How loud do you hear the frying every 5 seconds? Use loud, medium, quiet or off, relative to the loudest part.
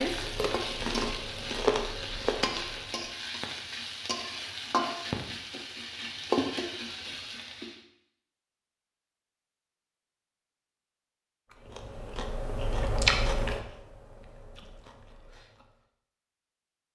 loud, loud, off, off.